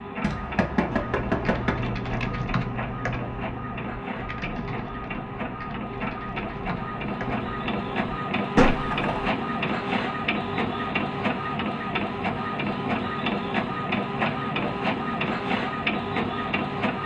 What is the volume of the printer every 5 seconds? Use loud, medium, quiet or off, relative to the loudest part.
medium, loud, loud, loud.